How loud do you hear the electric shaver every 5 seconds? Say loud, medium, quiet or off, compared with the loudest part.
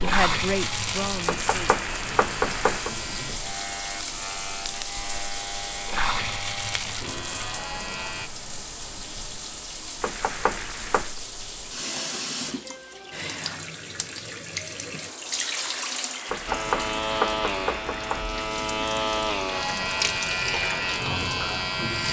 medium, medium, off, loud, loud.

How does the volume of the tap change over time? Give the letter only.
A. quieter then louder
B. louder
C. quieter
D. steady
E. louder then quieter
D.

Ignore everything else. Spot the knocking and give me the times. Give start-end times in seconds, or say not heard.
1.2-2.9, 10.0-11.2, 16.2-18.2.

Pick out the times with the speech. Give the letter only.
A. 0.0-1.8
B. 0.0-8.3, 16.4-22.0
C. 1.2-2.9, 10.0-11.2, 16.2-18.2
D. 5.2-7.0
A.